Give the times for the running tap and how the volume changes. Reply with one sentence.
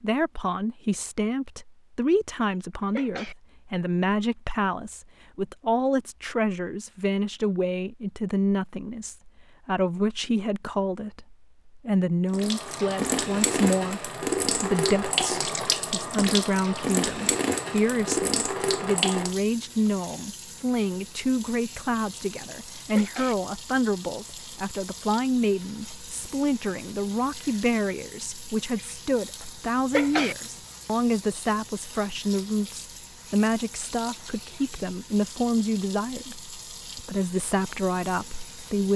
The running tap can be heard from 12.3 to 38.9 s, getting quieter.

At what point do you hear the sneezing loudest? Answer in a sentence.
The loudest moment of the sneezing is at 30 seconds.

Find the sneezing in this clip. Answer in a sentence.
You can hear the sneezing from 2.9 to 3.4 s, from 22.9 to 23.4 s and from 29.9 to 30.4 s.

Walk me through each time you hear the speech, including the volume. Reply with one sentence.
You can hear the speech from 0.0 to 38.9 s, at a steady volume.